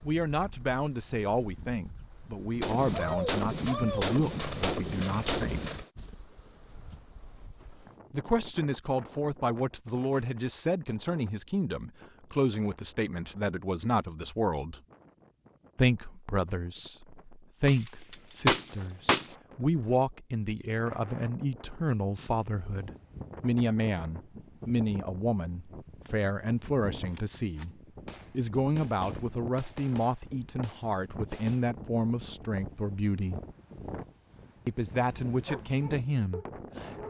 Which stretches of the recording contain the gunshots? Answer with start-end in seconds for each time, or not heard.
2.6-5.9, 17.6-19.4, 27.1-31.6.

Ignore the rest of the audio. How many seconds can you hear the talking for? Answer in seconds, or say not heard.
32 s.